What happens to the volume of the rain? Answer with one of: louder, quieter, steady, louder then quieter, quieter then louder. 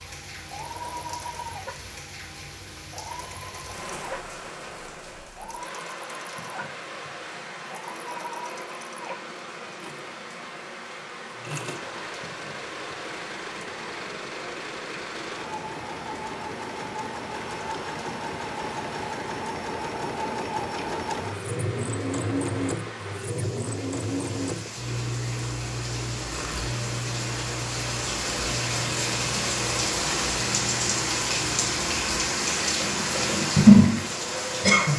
louder.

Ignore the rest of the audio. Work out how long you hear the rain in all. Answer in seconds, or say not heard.
35 s.